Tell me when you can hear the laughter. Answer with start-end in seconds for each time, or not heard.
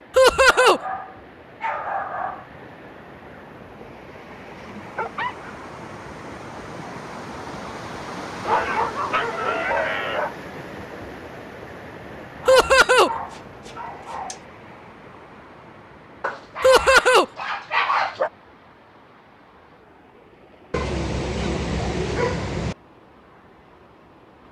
0.1-0.8, 12.4-13.1, 16.6-17.2.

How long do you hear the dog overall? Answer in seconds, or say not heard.
11 s.